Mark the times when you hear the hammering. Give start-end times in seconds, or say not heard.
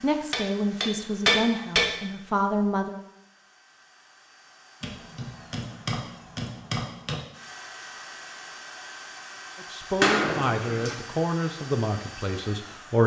0.3-1.9, 4.8-7.2, 10.0-10.9.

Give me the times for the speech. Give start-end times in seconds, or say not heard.
0.0-3.0, 9.6-13.0.